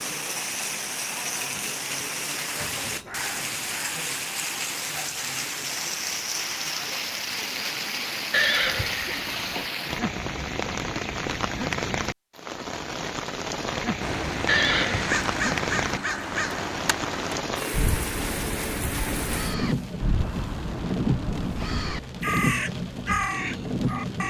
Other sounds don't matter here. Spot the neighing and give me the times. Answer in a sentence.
The neighing can be heard from 8.3 to 9.7 s and from 14.4 to 15.2 s.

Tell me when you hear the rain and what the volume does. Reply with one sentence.
You can hear the rain from 0.0 to 24.2 s, at a steady volume.